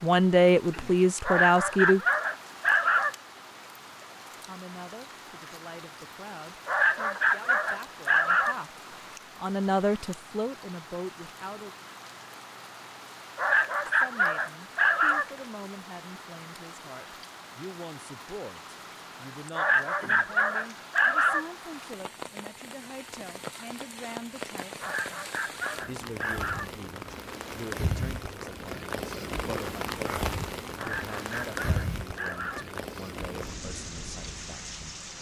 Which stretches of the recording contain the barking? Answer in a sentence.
You can hear the barking from 1.2 to 3.1 s, from 6.7 to 8.6 s, from 13.3 to 15.2 s, from 19.6 to 21.4 s, from 24.8 to 26.7 s and from 30.8 to 32.6 s.